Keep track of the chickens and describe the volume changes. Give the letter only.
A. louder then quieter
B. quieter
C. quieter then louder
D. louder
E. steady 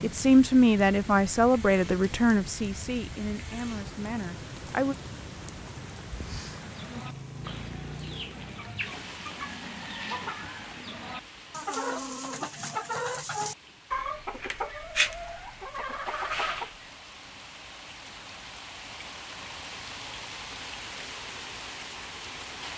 D.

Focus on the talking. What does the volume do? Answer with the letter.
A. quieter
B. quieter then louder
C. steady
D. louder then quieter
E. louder
A.